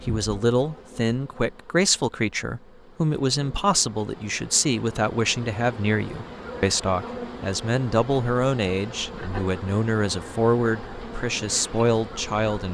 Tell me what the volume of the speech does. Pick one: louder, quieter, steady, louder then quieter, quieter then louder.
steady.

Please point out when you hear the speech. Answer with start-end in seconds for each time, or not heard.
0.1-12.6.